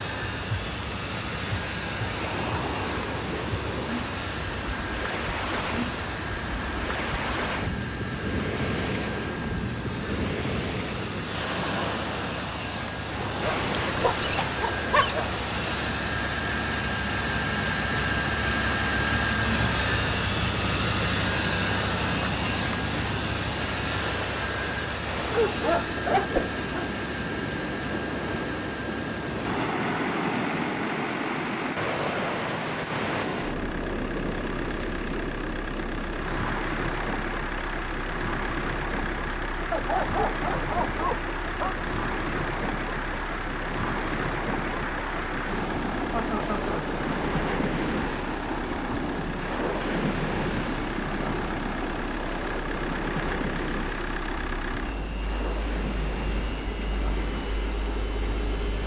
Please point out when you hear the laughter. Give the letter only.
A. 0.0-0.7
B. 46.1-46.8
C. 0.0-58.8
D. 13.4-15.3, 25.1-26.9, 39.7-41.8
B.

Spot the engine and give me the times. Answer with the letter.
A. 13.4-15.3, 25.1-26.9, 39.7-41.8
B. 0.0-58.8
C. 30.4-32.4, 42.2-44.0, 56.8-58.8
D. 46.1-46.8
B.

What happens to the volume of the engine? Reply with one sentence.
The volume of the engine goes up, then down.